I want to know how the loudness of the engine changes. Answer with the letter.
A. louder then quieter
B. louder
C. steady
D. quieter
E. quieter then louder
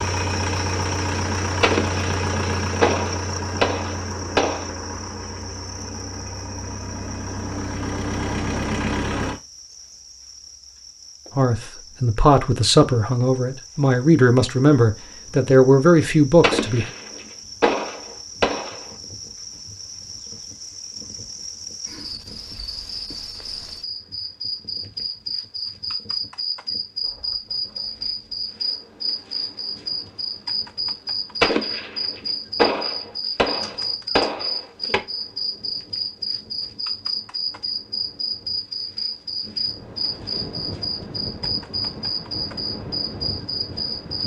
E.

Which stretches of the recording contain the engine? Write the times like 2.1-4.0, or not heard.
0.0-9.4.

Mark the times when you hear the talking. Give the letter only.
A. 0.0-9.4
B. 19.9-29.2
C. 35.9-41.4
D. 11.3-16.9
D.